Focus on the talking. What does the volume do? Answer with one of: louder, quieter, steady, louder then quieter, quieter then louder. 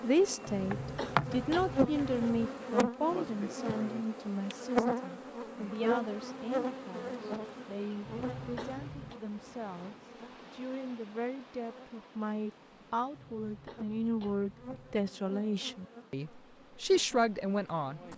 quieter then louder.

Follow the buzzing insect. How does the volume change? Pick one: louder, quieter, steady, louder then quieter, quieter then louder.
quieter then louder.